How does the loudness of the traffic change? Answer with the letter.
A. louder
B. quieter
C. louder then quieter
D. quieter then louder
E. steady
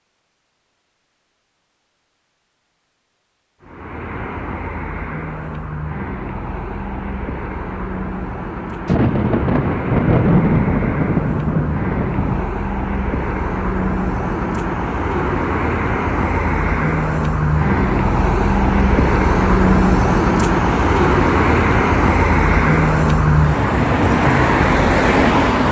A.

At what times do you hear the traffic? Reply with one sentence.
You can hear the traffic from 3.6 to 25.6 s.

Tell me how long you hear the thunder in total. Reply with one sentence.
The thunder can be heard for 4 seconds in total.